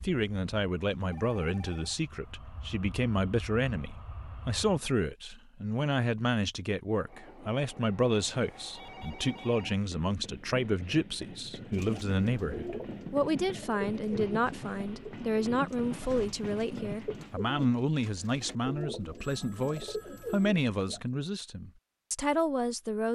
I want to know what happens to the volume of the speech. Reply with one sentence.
The loudness of the speech stays about the same.